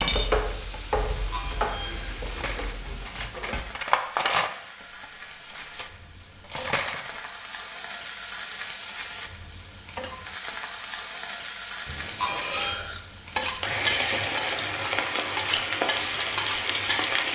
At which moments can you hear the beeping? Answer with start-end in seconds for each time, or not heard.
1.1-2.6, 11.8-12.8.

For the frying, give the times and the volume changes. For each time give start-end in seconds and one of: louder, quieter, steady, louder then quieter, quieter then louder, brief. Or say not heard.
0.0-17.3 quieter then louder.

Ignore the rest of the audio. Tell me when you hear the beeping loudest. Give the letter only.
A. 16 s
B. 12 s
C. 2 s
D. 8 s
B.